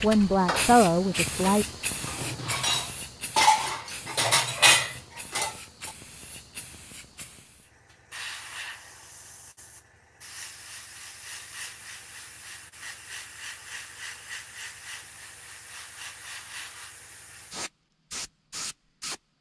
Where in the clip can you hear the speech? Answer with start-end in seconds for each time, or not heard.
0.0-1.6.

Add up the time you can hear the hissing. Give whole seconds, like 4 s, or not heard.
19 s.